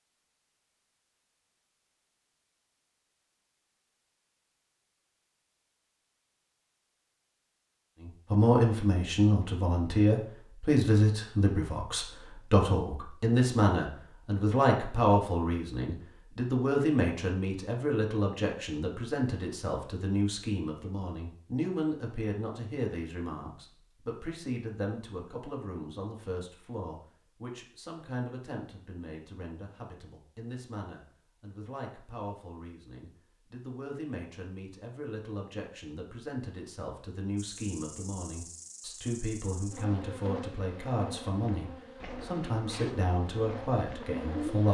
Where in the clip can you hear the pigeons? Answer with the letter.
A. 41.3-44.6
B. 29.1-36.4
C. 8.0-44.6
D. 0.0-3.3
A.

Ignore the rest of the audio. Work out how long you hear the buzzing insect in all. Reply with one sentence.
The buzzing insect can be heard for 7 seconds in total.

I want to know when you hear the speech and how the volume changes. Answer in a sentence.
The speech can be heard from 8.0 to 44.6 s, getting quieter then louder.